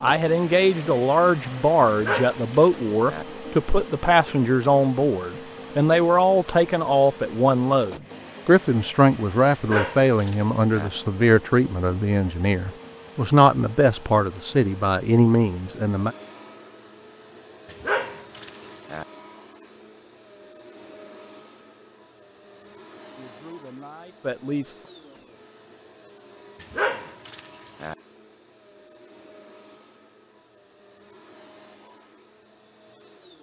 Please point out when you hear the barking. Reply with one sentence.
You can hear the barking from 1.9 to 3.2 s, from 9.5 to 10.9 s, from 17.7 to 19.1 s and from 26.6 to 27.9 s.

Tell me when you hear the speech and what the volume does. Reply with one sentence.
The speech can be heard from 0.0 to 16.1 s, at a steady volume; and briefly from 23.1 to 24.7 s.